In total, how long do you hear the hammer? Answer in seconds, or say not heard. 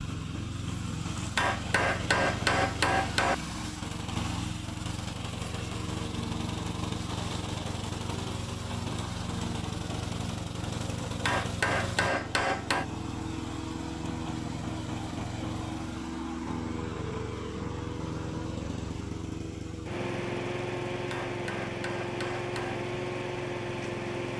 5 s.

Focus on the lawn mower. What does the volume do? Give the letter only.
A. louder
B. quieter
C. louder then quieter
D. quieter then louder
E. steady
E.